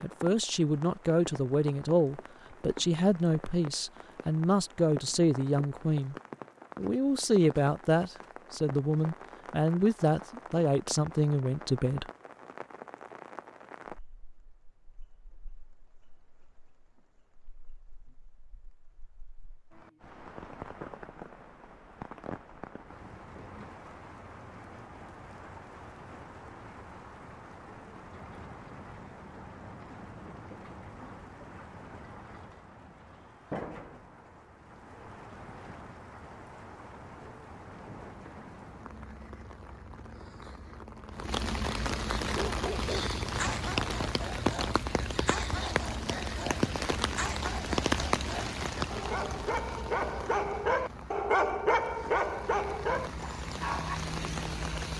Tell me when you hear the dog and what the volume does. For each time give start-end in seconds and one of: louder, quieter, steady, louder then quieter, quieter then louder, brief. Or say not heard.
42.3-54.0 louder.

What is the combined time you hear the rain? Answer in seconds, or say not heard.
55 s.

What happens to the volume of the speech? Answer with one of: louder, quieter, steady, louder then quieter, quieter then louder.
steady.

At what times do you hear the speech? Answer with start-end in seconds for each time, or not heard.
0.0-6.2, 6.8-12.1.